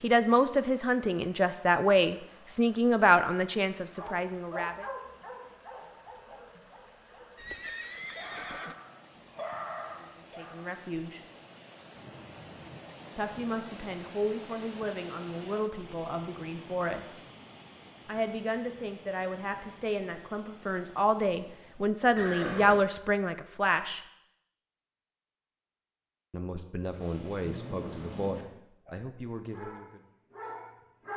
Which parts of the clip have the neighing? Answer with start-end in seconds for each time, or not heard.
7.3-8.8, 22.1-22.9.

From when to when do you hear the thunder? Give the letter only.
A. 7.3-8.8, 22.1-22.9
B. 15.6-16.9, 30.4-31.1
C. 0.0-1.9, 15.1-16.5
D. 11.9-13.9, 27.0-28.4
D.